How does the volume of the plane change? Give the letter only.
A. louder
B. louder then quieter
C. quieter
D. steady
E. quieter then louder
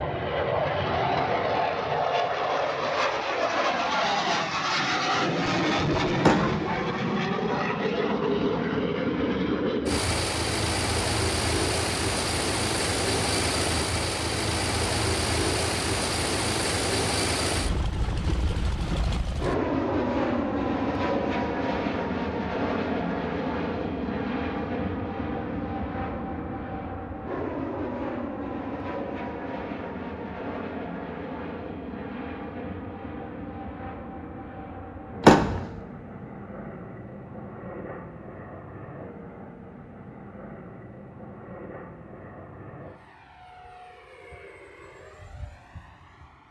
C.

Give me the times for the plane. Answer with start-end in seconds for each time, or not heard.
0.0-46.4.